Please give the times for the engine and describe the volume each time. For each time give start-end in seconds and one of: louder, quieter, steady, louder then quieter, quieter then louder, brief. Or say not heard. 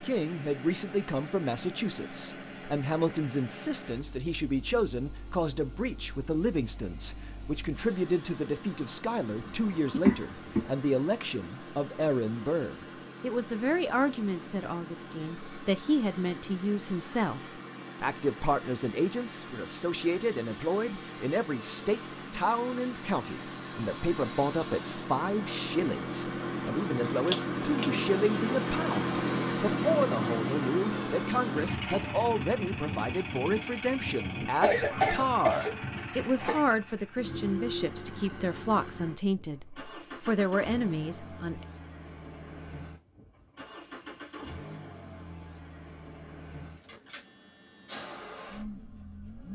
0.0-49.5 louder then quieter.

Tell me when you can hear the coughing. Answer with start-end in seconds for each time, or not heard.
9.4-10.7, 27.2-27.9, 34.6-36.6.